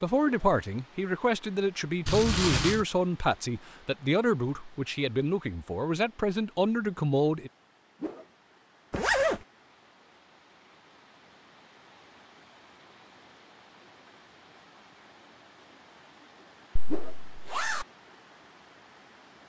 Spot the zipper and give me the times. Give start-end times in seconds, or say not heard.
2.0-2.9, 8.9-9.4, 16.8-17.9.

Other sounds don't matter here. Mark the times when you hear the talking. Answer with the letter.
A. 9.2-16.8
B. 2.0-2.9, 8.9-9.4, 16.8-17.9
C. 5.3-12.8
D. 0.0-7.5
D.